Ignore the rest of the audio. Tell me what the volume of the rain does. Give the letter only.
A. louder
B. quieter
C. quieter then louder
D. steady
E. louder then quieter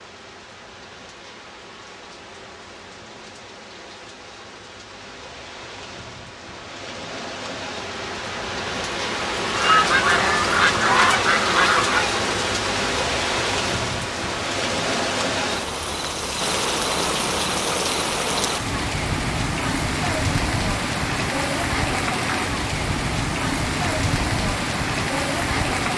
A.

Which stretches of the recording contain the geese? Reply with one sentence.
The geese can be heard from 9.6 to 12.1 s.